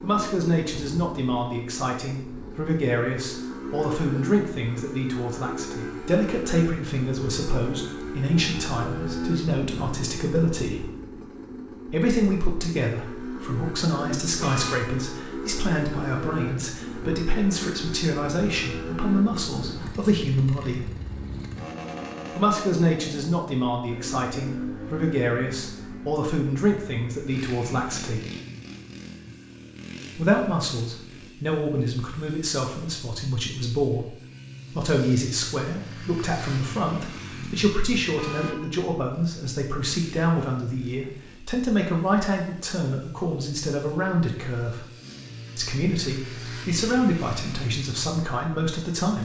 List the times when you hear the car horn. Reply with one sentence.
You can hear the car horn from 14.3 to 15.1 s and from 38.1 to 38.8 s.